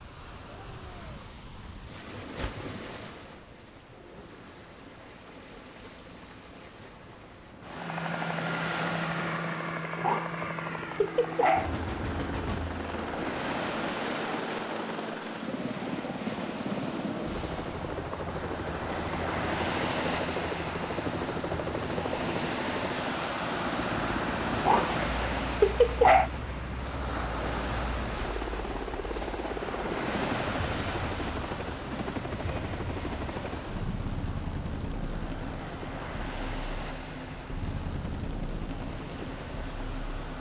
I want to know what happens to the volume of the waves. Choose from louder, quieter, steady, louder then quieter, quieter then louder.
louder then quieter.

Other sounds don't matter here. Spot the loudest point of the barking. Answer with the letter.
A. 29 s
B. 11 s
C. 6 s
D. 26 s
D.